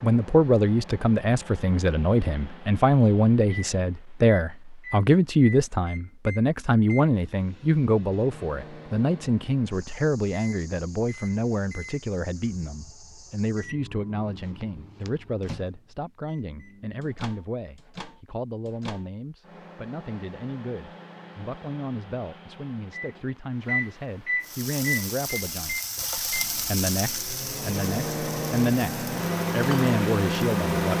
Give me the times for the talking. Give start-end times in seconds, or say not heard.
0.0-30.9.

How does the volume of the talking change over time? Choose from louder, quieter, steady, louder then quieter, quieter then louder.
quieter then louder.